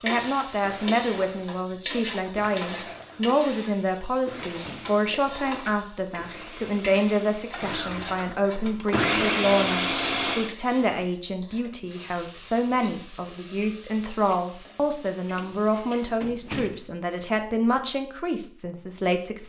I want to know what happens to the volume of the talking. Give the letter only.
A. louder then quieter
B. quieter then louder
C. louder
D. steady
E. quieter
D.